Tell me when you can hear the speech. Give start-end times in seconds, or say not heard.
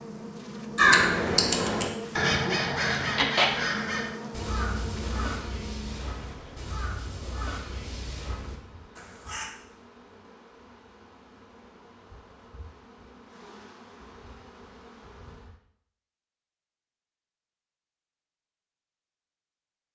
not heard.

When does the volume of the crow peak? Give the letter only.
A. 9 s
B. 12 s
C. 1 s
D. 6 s
C.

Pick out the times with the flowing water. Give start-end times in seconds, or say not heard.
not heard.